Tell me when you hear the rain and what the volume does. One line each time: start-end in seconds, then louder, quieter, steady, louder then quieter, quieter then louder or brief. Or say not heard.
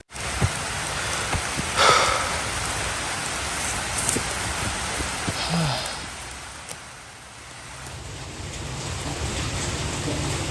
0.0-10.4 quieter then louder.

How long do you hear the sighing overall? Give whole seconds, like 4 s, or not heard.
2 s.